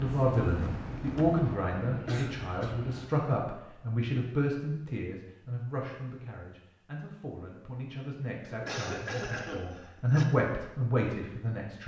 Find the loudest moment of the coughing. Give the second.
9 s.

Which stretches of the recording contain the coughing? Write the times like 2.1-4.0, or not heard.
2.0-2.8, 8.7-10.2.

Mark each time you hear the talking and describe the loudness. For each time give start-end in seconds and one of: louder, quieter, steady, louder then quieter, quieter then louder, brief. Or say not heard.
0.0-11.8 quieter then louder.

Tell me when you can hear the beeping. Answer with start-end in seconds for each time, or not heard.
not heard.